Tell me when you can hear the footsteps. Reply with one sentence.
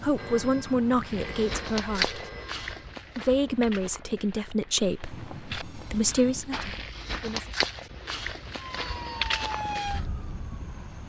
You can hear the footsteps from 1.1 to 10.1 s.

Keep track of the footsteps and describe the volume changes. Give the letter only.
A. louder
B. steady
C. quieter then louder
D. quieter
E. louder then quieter
C.